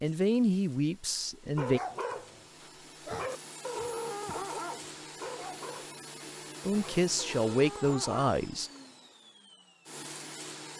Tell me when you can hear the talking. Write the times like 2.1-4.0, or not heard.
0.0-1.8, 6.7-8.7.